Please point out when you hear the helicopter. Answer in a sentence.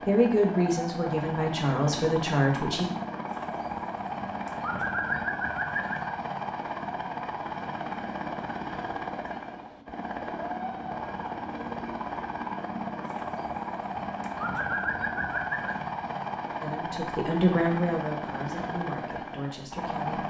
You can hear the helicopter from 0.0 to 20.2 s.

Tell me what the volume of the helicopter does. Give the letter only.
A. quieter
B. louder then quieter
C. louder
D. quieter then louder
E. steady
E.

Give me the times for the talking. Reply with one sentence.
You can hear the talking from 0.0 to 2.9 s and from 16.6 to 20.2 s.